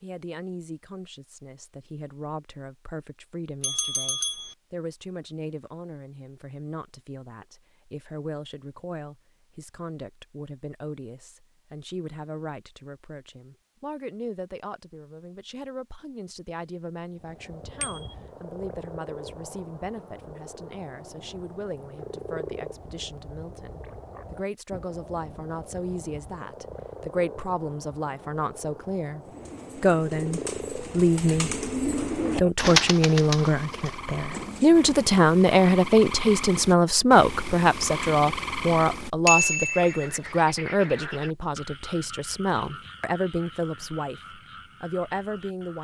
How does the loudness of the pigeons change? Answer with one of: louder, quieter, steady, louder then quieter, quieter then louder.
louder then quieter.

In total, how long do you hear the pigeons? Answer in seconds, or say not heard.
6 s.